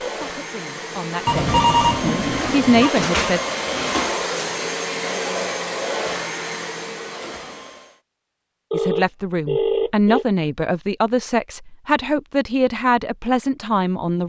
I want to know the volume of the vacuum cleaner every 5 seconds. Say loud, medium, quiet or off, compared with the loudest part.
loud, loud, off.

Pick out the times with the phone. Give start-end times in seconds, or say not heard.
1.2-2.9, 8.7-10.2.